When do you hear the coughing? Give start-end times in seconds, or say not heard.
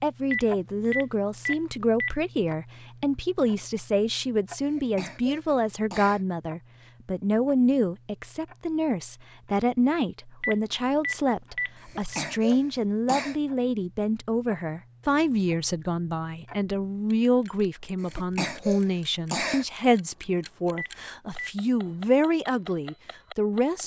4.6-6.2, 11.8-13.4, 18.0-19.6.